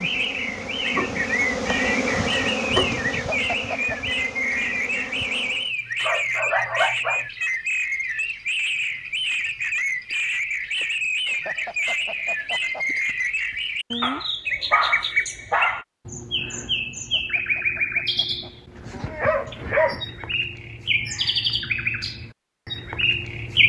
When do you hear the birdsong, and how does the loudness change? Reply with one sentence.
You can hear the birdsong from 0.0 to 23.6 s, at a steady volume.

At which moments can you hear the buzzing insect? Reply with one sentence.
You can hear the buzzing insect from 0.0 to 5.8 s.